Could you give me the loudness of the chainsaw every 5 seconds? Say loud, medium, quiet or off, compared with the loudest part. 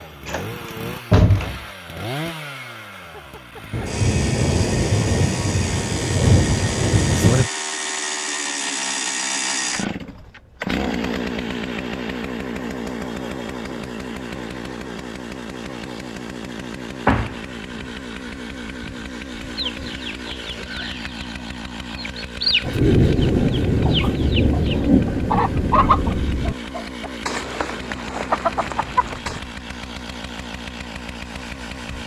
medium, loud, loud, medium, medium, medium, medium.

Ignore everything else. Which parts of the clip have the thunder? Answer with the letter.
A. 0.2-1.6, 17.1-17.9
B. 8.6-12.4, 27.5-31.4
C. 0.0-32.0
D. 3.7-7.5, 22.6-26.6
D.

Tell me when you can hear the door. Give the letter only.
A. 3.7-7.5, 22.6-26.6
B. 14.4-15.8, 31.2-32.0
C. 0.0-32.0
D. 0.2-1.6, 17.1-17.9
D.